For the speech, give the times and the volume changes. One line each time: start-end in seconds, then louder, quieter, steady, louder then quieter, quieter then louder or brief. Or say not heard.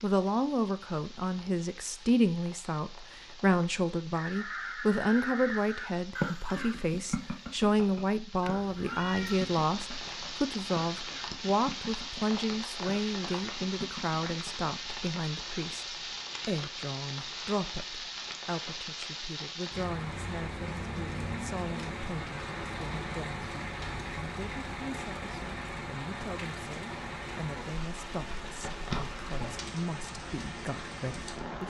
0.0-31.6 quieter.